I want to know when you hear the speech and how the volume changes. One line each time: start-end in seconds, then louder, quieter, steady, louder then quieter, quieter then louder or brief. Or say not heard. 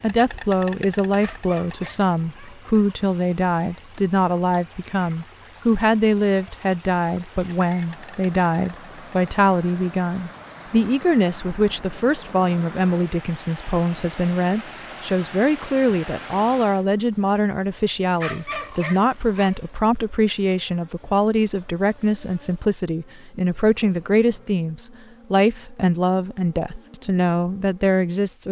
0.0-28.4 steady.